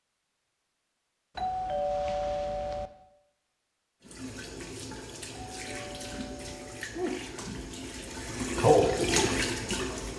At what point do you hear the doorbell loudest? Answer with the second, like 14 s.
2 s.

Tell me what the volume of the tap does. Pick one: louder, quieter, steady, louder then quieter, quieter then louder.
louder.